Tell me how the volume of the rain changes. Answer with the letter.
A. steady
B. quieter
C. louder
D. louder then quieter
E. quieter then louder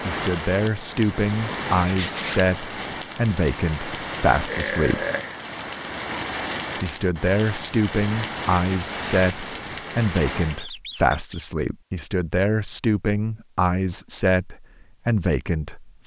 A.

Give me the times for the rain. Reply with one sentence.
You can hear the rain from 0.0 to 10.7 s.